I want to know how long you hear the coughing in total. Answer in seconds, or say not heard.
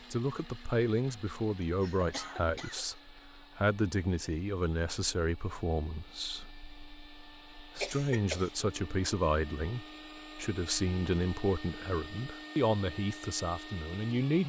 2 s.